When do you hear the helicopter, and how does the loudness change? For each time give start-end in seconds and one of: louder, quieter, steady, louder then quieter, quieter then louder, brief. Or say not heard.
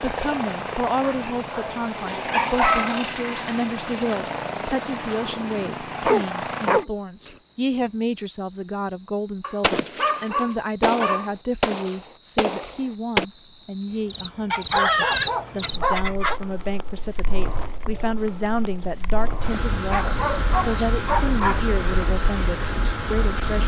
0.0-6.8 steady.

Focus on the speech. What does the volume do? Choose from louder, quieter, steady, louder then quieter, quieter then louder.
steady.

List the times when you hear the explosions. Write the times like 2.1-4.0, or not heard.
9.6-13.2.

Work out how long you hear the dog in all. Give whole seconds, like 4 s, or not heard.
9 s.